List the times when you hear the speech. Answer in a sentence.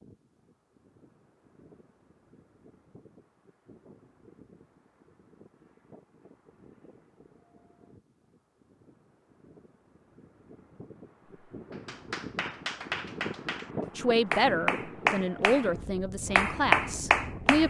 You can hear the speech from 13.9 to 17.6 s.